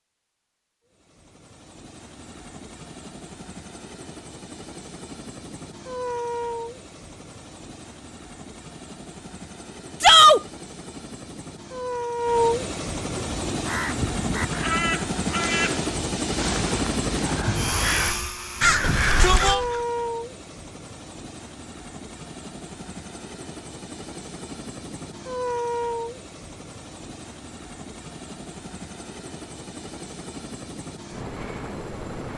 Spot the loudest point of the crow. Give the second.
19 s.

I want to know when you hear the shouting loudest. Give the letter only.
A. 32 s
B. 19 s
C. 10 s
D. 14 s
C.